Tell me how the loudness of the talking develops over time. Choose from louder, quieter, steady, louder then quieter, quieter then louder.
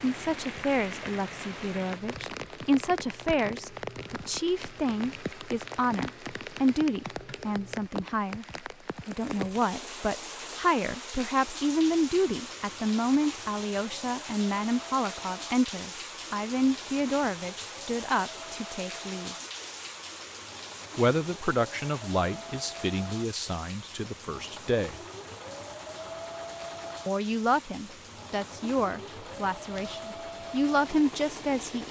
steady.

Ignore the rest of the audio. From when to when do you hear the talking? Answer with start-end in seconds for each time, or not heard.
0.0-8.4, 9.1-19.4, 20.9-24.9, 27.1-31.8.